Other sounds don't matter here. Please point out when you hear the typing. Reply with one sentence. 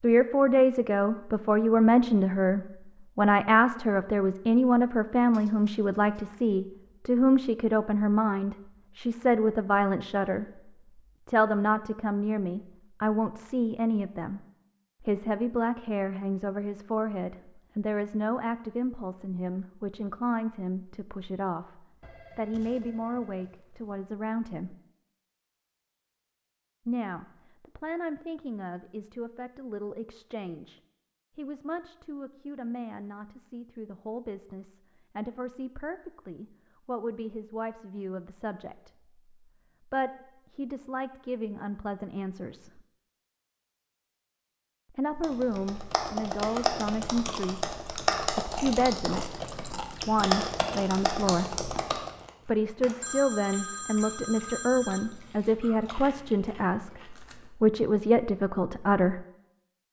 The typing can be heard from 45.2 to 52.1 s.